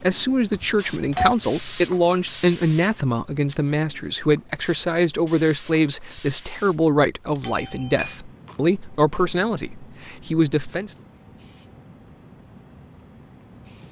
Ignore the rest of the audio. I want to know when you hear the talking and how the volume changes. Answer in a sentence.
The talking can be heard from 0.0 to 10.9 s, at a steady volume.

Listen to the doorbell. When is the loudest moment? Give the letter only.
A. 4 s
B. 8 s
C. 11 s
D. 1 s
D.